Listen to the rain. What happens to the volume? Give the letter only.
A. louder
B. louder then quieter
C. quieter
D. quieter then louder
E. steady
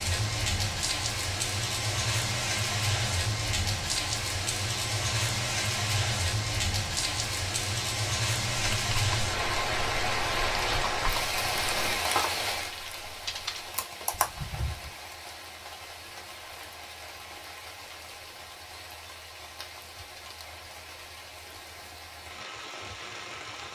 C.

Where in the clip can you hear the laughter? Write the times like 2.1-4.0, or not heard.
not heard.